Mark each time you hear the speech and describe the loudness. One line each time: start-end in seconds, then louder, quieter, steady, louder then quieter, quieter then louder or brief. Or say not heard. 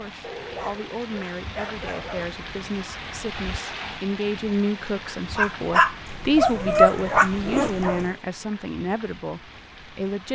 0.0-10.3 louder then quieter.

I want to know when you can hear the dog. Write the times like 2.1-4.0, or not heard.
0.2-2.2, 5.3-8.2.